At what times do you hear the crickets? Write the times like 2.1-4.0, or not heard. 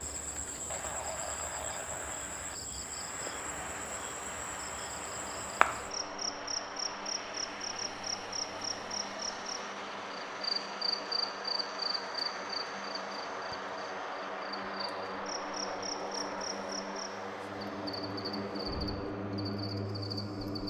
0.0-20.6.